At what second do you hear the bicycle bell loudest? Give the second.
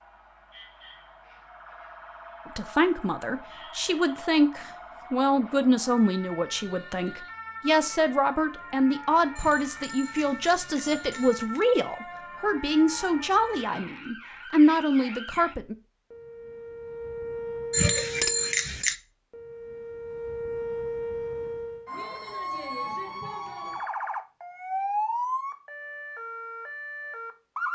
18 s.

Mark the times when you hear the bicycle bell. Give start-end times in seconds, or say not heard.
9.3-11.7, 17.7-18.9.